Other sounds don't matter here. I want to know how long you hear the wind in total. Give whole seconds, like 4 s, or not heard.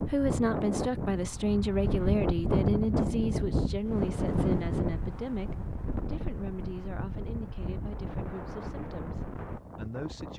10 s.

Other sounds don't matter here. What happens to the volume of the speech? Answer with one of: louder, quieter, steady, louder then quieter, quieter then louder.
quieter.